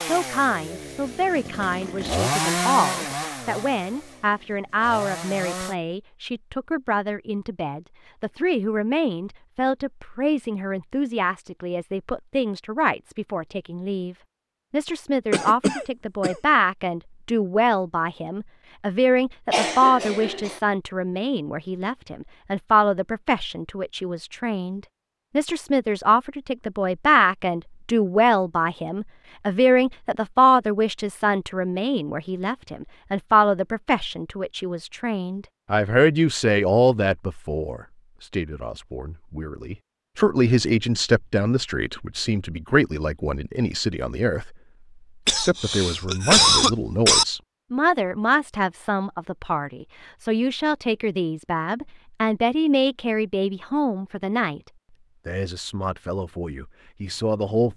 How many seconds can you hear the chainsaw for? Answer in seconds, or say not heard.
6 s.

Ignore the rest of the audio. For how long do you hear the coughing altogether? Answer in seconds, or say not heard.
4 s.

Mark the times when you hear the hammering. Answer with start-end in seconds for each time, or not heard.
not heard.